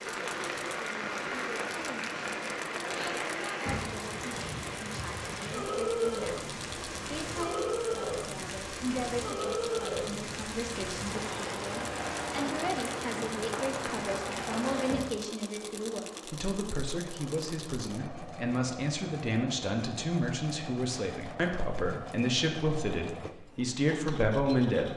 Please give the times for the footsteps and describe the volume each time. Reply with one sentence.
The footsteps can't be heard in this clip.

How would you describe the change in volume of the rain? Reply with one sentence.
The volume of the rain stays about the same.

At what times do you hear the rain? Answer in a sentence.
The rain can be heard from 0.0 to 15.2 s.